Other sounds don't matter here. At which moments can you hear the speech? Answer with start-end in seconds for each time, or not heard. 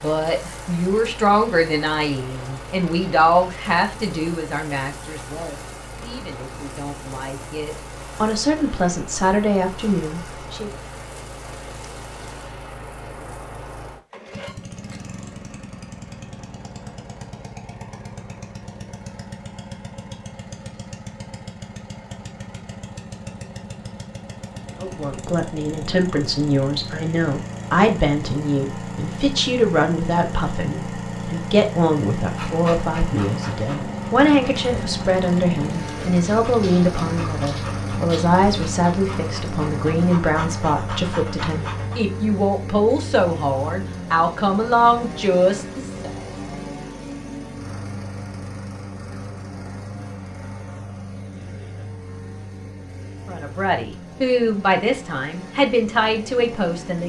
0.0-10.7, 24.8-46.1, 53.2-57.0.